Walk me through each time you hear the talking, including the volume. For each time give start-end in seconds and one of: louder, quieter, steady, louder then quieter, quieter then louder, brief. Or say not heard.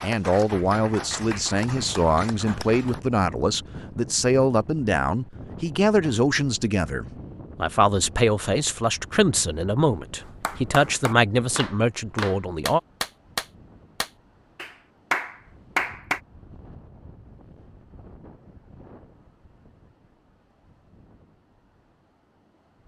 0.0-12.8 steady.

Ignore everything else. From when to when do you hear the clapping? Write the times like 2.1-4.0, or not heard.
0.0-3.0, 10.2-16.2.